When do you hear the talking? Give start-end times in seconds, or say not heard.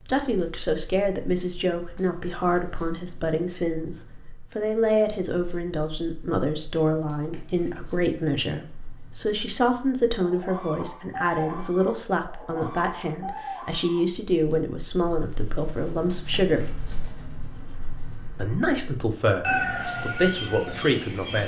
0.1-16.6, 18.4-21.4.